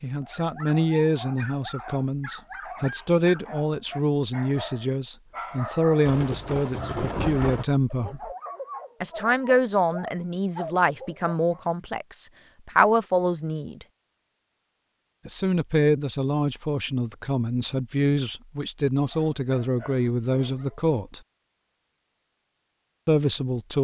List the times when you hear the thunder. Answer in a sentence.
The thunder can be heard from 6.0 to 7.7 s.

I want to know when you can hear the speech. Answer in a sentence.
You can hear the speech from 0.0 to 8.3 s, from 9.0 to 13.8 s, from 15.2 to 21.2 s and from 23.1 to 23.8 s.